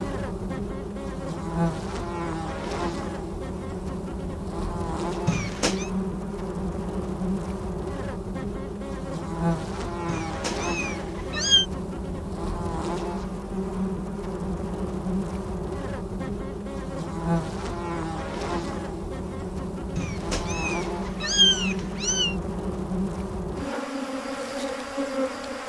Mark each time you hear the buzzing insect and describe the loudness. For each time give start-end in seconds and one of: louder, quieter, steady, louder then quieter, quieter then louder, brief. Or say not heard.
0.0-25.6 steady.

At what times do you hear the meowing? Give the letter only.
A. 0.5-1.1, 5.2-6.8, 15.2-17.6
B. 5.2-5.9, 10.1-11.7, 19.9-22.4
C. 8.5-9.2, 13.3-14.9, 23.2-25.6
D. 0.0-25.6
B.